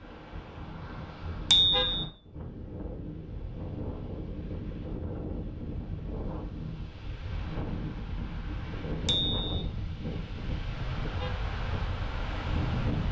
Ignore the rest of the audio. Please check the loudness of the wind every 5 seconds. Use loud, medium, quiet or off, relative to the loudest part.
medium, loud, loud.